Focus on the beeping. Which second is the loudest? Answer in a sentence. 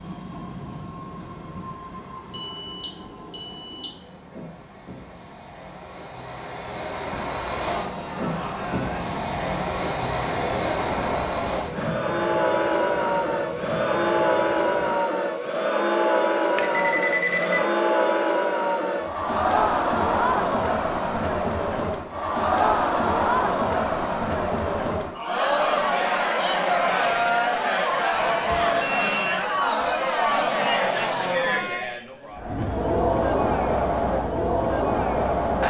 The loudest moment of the beeping is at 17 seconds.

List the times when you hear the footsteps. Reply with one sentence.
The footsteps can't be heard in this clip.